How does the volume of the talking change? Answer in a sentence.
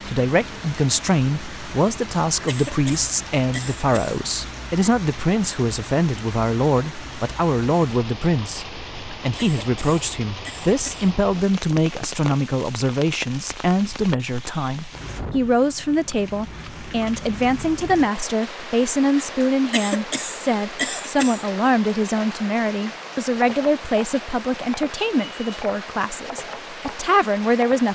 The loudness of the talking stays about the same.